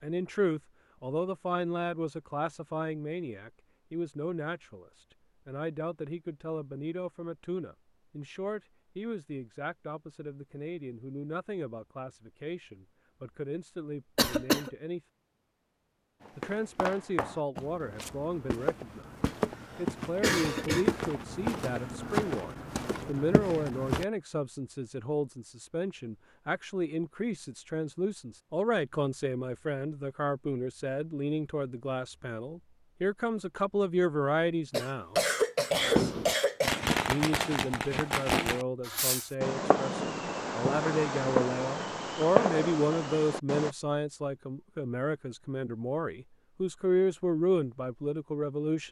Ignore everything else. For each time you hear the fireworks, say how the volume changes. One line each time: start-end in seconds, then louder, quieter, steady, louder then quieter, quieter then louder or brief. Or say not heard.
35.7-43.8 steady.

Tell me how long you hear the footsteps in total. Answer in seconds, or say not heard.
8 s.